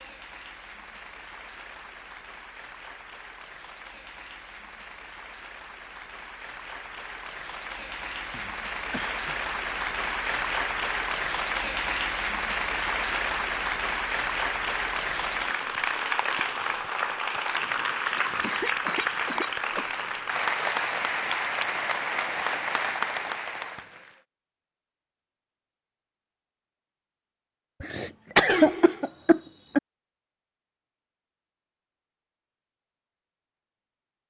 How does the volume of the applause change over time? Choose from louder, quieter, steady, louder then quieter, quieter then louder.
louder.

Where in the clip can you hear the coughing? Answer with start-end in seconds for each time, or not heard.
8.3-9.3, 17.9-20.0, 27.8-29.8.